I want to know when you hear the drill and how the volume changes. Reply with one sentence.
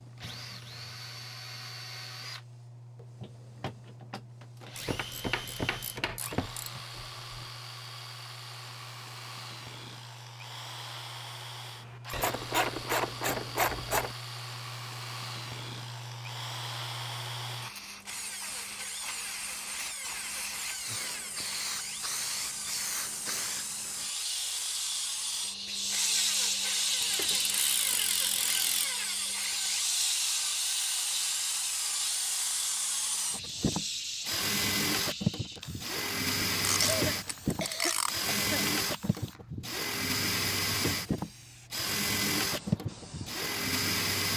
You can hear the drill from 0.0 to 44.3 s, getting louder.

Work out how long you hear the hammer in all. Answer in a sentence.
You can't hear the hammer here.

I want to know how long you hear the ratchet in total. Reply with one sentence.
The ratchet can be heard for 8 seconds in total.